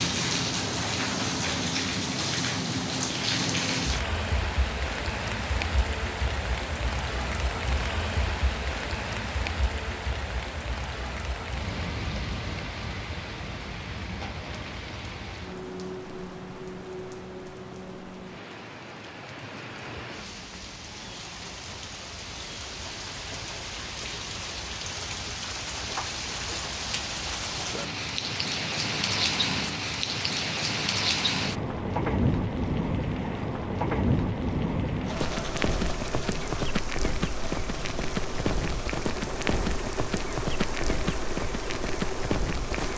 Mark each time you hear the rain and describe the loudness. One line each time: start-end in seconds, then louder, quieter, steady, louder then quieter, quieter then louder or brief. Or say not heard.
0.0-42.9 quieter then louder.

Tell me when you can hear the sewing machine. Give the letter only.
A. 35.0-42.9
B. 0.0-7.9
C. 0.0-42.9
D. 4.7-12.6
A.